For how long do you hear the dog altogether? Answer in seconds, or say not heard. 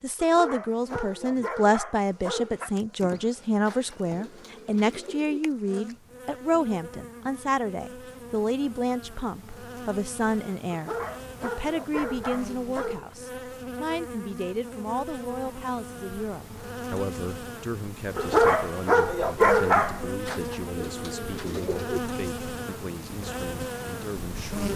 7 s.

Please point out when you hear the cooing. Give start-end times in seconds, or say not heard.
3.6-5.4, 20.2-22.0.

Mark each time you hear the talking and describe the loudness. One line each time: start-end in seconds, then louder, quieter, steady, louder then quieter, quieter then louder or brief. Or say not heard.
0.0-24.7 quieter.